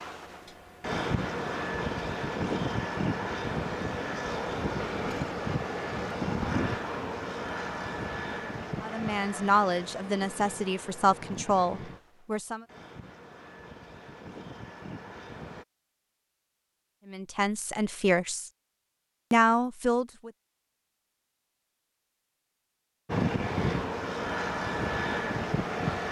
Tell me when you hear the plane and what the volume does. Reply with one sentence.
You can hear the plane from 0.0 to 15.7 s, getting quieter; and briefly from 23.1 to 26.0 s.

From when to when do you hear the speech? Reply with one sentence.
You can hear the speech from 8.8 to 12.7 s, from 17.1 to 18.5 s and from 19.3 to 20.3 s.